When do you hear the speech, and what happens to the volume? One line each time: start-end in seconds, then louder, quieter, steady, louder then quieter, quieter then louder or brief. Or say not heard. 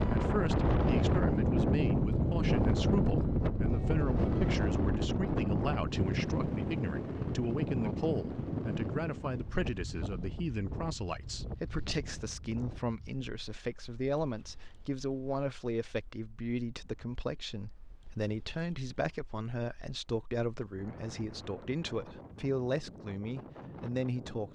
0.0-24.5 steady.